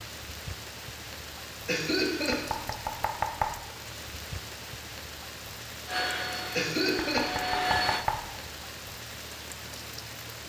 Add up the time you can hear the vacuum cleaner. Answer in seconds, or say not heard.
2 s.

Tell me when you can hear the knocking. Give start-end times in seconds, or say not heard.
2.3-3.6, 7.0-8.3.